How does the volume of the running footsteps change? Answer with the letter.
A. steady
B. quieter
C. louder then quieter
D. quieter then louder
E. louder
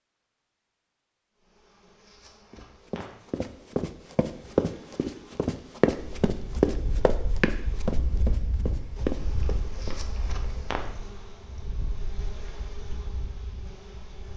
C.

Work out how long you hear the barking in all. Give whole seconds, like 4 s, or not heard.
not heard.